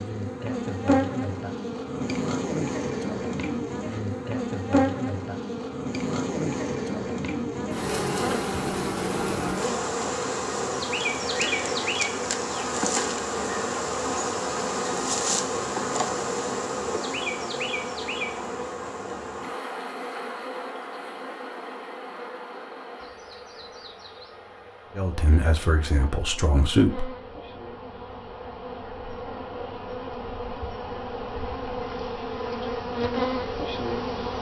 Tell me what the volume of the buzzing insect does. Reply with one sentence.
The volume of the buzzing insect goes down, then up.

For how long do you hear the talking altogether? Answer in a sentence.
You can hear the talking for 2 seconds altogether.